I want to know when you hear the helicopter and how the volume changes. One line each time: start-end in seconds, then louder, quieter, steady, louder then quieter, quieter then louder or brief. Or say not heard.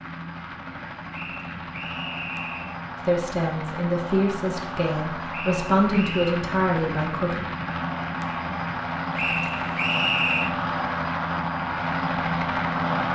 0.0-13.1 louder.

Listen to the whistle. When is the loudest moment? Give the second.
10 s.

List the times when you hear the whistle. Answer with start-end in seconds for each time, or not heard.
1.1-2.8, 5.3-6.4, 9.2-10.6.